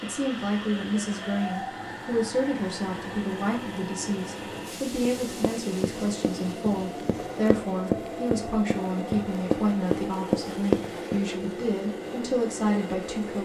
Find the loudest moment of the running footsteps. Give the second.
11 s.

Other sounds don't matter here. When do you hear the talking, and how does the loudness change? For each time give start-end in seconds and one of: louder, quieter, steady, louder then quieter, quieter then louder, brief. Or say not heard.
0.0-13.4 steady.